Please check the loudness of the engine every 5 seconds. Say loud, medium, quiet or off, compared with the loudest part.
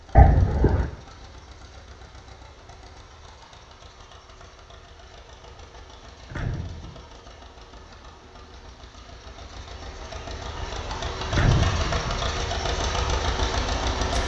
quiet, quiet, loud.